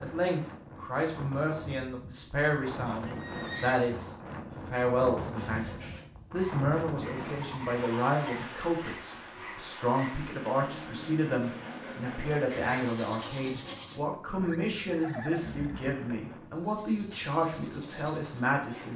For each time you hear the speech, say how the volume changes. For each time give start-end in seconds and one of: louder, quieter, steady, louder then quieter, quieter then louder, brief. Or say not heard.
0.0-18.9 steady.